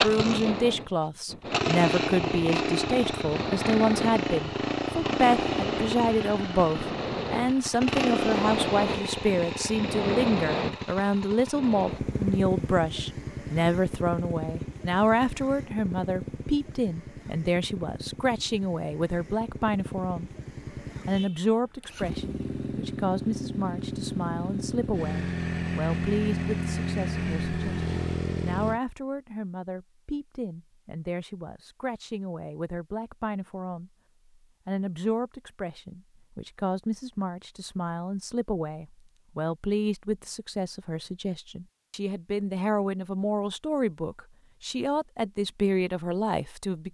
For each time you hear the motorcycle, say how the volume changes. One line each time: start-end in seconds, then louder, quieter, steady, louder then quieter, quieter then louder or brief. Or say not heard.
0.0-28.8 quieter then louder.